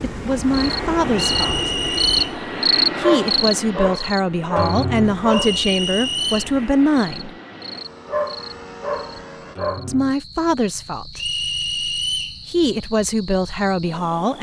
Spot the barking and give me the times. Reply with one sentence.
The barking can be heard from 3.0 to 5.6 s and from 8.1 to 9.8 s.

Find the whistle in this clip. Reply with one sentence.
You can hear the whistle from 1.1 to 2.4 s, from 5.3 to 6.5 s and from 11.2 to 12.4 s.